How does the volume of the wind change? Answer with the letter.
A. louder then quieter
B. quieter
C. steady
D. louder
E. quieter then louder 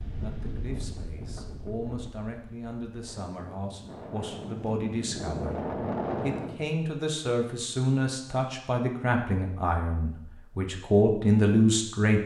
E.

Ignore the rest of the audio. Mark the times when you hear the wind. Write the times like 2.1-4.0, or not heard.
0.0-6.7.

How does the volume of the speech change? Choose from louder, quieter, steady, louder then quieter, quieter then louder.
louder.